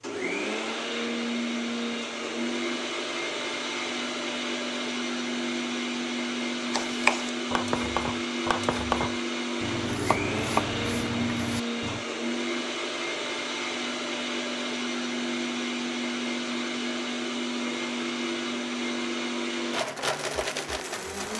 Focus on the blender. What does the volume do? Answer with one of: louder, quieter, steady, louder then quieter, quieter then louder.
steady.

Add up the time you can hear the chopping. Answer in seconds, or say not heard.
5 s.